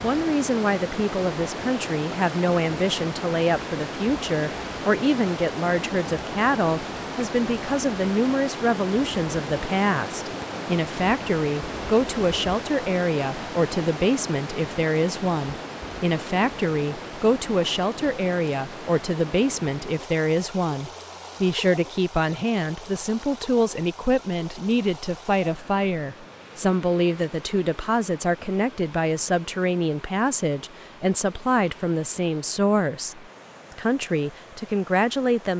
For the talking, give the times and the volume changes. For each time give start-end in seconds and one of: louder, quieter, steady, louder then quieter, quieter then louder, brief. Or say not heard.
0.0-35.5 steady.